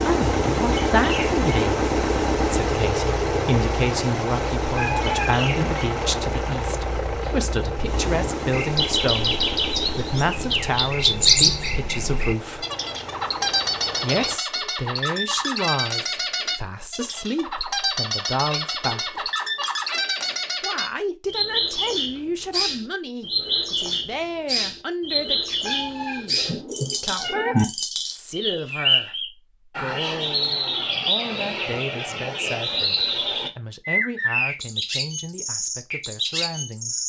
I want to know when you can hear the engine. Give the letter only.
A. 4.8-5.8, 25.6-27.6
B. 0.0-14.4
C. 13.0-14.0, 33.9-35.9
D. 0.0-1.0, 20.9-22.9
B.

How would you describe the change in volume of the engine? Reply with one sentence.
The loudness of the engine goes down.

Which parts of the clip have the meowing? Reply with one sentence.
You can hear the meowing from 4.8 to 5.8 s and from 25.6 to 27.6 s.